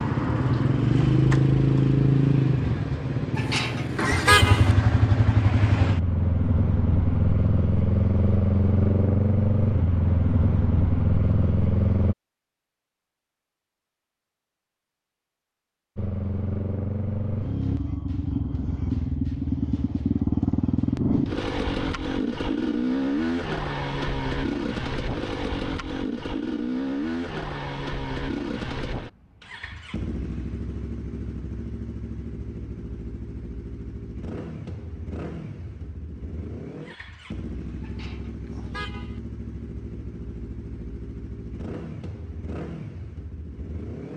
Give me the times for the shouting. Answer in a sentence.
You can't hear the shouting here.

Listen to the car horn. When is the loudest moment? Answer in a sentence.
The loudest moment of the car horn is at 4 seconds.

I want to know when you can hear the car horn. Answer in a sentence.
You can hear the car horn from 3.4 to 4.8 s and from 37.8 to 39.2 s.